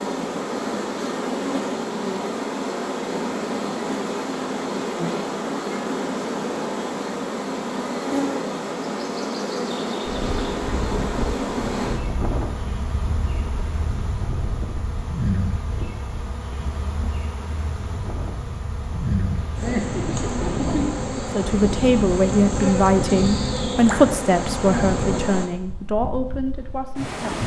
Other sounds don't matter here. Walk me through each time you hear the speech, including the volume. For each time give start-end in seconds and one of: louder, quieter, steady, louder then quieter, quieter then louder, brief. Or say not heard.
21.3-27.4 quieter.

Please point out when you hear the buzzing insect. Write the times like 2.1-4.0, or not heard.
0.0-25.4.